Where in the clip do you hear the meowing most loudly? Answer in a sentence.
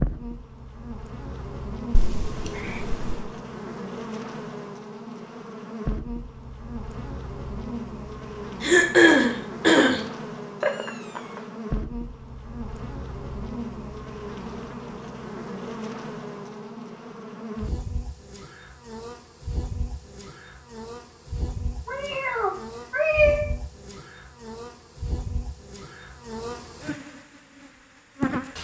The loudest moment of the meowing is at 23 seconds.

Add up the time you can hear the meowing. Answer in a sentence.
You can hear the meowing for 4 seconds altogether.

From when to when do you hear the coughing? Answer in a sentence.
The coughing can be heard from 8.6 to 10.0 s.